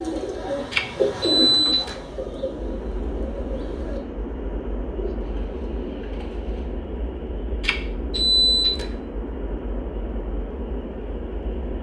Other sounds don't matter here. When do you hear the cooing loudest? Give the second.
1 s.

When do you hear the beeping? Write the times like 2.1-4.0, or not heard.
0.7-1.9, 7.6-8.8.